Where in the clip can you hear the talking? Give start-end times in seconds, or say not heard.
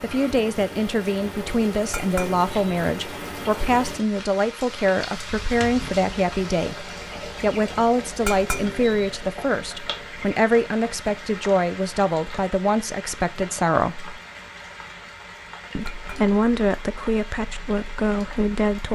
0.0-14.2, 15.8-18.9.